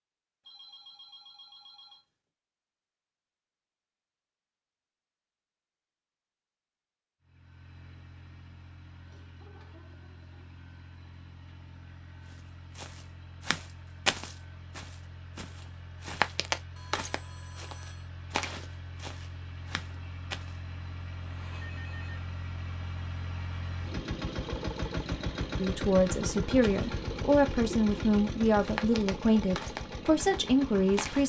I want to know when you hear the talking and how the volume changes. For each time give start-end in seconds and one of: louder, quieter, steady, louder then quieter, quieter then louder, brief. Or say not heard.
25.6-31.2 steady.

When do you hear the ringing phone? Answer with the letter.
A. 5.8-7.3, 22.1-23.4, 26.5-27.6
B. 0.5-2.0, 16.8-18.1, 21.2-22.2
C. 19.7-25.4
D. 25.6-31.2
B.